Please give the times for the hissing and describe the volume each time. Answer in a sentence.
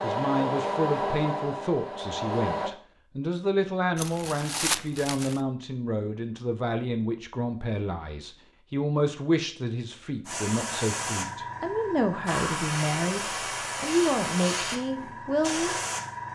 The hissing can be heard from 10.2 to 16.3 s, at a steady volume.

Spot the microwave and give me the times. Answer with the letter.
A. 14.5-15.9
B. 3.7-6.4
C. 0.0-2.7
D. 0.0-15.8
C.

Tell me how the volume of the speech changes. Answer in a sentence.
The volume of the speech stays about the same.